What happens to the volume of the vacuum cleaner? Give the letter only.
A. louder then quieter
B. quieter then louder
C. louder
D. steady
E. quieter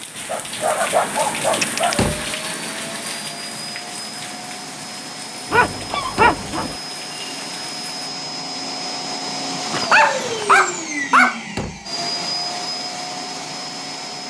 C.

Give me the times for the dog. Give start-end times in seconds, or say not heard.
0.2-2.0, 5.5-6.8, 9.7-11.3.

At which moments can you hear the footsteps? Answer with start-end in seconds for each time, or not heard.
not heard.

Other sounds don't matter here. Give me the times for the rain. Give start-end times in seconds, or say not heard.
0.0-8.1.